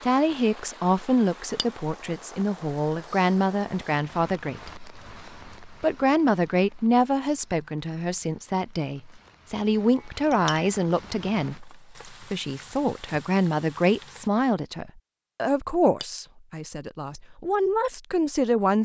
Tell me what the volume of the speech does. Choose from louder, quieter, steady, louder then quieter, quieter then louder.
steady.